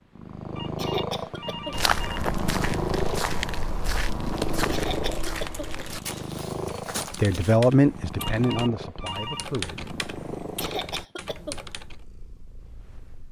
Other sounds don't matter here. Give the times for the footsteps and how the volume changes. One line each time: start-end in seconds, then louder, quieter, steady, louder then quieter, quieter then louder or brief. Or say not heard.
1.7-7.6 quieter.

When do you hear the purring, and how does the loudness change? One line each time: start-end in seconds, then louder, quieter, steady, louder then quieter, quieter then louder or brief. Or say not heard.
0.1-13.2 quieter.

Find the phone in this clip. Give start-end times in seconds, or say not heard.
0.6-2.2, 8.3-9.5.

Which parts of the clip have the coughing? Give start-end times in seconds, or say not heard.
0.8-1.8, 4.7-5.8, 10.6-11.6.